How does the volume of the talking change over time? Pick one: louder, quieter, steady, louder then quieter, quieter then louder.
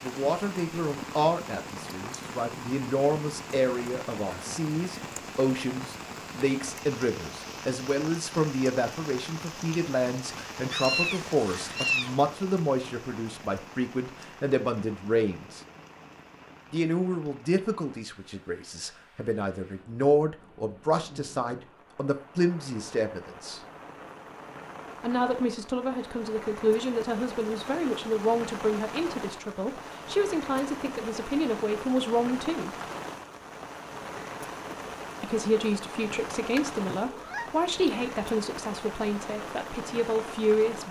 steady.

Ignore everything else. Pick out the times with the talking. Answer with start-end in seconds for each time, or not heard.
0.0-15.6, 16.7-23.6, 25.0-32.7, 35.2-40.8.